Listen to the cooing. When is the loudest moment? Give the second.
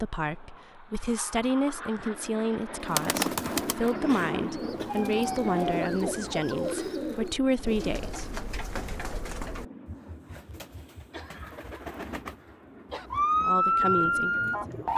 3 s.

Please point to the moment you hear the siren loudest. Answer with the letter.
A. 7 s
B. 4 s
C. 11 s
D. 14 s
D.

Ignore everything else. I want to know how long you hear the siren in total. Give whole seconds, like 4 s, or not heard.
4 s.